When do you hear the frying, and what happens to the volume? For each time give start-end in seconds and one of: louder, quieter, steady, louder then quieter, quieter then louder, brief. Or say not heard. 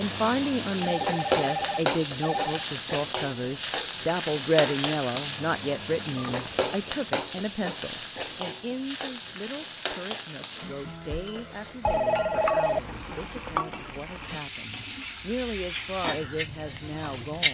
0.0-17.4 quieter.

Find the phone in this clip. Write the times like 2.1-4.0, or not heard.
0.8-2.6, 6.2-6.7, 11.8-12.9.